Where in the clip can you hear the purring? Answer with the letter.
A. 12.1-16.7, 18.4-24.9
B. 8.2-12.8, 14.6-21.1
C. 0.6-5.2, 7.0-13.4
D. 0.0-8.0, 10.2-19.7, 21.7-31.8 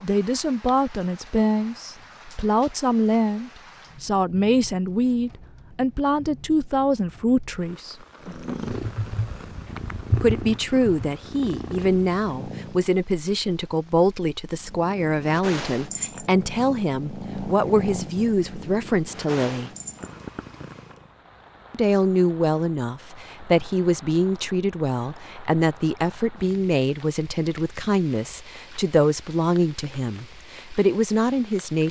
B.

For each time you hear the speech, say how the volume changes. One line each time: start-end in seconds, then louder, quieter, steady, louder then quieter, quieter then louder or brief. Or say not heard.
0.0-8.0 steady
10.2-19.7 steady
21.7-31.8 steady.